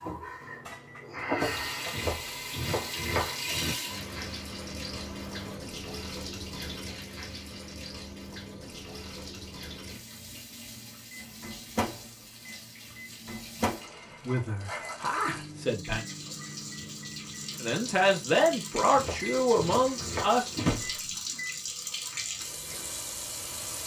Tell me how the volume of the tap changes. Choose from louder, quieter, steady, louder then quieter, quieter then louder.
quieter then louder.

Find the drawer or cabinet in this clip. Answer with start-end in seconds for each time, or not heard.
20.6-21.1.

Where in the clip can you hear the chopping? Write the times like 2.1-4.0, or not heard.
1.9-3.8, 18.9-20.8.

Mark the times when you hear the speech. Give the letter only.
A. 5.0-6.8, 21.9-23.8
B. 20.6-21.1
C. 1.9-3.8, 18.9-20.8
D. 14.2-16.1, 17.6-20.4
D.